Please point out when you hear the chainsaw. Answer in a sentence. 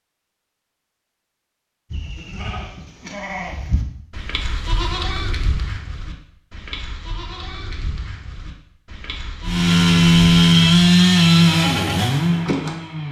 The chainsaw can be heard from 9.4 to 13.0 s.